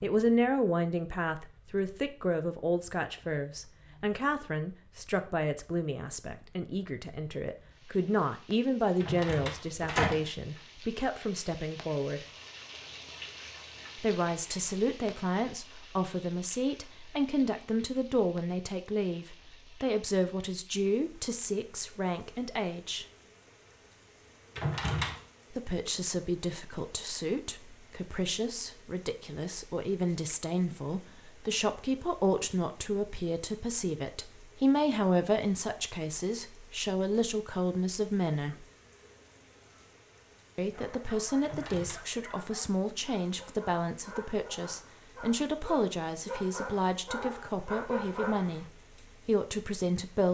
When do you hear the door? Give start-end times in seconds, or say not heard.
9.0-10.2, 24.6-25.2, 41.4-42.0.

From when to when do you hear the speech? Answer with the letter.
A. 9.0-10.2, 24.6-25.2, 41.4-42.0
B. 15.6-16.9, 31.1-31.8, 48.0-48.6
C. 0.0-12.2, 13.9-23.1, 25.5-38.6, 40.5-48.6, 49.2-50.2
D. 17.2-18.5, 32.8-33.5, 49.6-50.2
C.